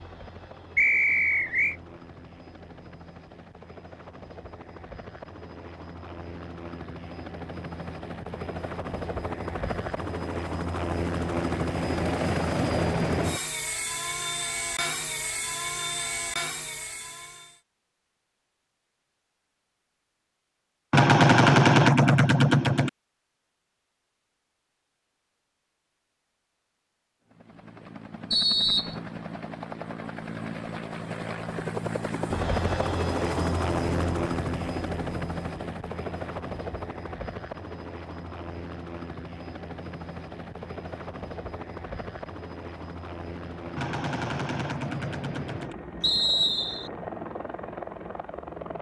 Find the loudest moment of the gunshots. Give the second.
22 s.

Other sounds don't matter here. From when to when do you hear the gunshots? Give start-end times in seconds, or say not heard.
20.9-22.9, 43.8-45.8.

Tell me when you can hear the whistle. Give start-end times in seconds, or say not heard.
0.8-1.8, 28.3-28.9, 46.0-46.9.